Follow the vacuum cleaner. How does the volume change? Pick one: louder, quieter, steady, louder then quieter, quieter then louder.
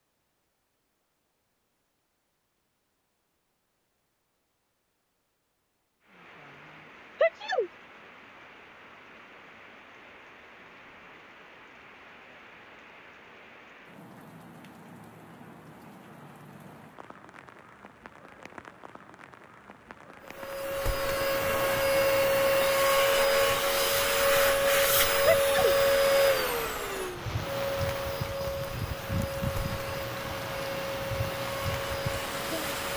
quieter.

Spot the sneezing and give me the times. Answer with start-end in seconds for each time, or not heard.
7.2-7.7, 25.2-25.8.